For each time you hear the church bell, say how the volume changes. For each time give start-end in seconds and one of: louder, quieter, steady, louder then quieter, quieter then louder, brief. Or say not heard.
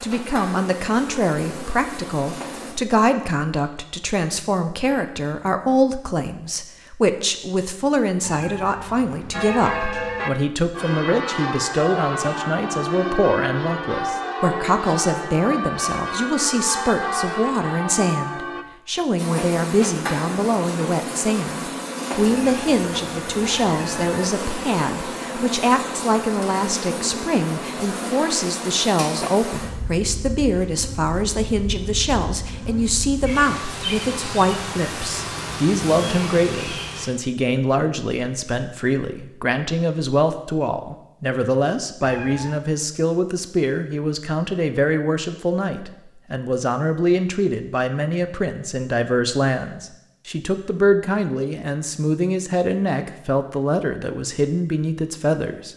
9.3-18.6 steady.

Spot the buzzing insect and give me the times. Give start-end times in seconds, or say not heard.
0.0-2.8, 19.1-37.1.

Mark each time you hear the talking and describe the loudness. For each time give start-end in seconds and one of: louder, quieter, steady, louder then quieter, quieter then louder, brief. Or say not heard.
0.0-55.7 steady.